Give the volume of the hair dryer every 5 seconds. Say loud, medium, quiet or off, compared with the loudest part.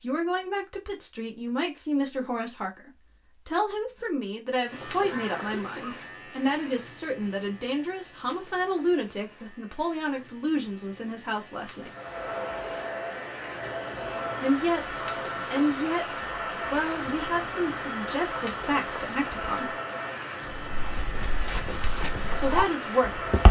off, off, loud, loud, loud.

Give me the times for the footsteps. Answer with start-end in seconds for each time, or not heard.
20.7-23.4.